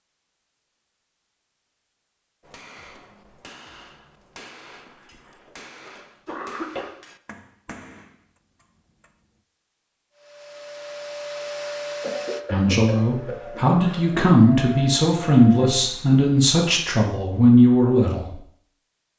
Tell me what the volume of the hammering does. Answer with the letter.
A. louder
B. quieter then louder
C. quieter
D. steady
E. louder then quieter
D.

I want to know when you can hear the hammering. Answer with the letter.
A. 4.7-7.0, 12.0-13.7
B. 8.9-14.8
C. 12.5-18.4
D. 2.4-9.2
D.